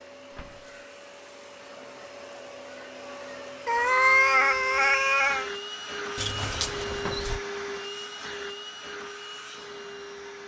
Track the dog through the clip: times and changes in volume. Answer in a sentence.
The dog can't be heard in this clip.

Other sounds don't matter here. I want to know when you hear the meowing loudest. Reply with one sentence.
The loudest moment of the meowing is at 4 seconds.